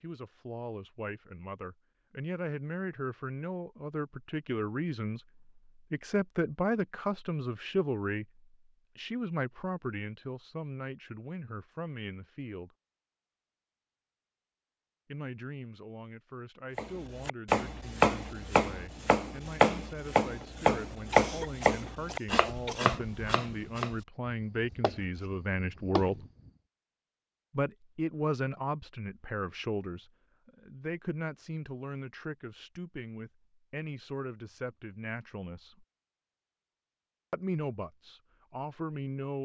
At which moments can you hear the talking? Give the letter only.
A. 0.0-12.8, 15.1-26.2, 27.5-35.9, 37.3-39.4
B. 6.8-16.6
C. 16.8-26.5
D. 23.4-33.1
A.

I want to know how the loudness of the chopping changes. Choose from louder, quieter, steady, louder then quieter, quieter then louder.
quieter.